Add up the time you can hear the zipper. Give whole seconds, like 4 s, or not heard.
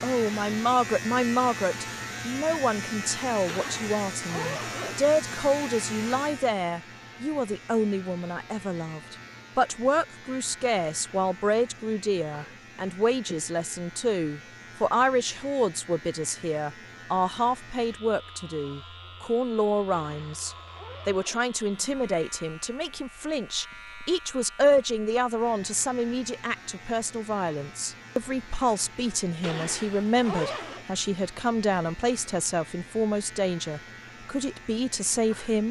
5 s.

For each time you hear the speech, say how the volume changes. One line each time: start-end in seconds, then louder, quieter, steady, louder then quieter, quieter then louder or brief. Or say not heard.
0.0-35.6 steady.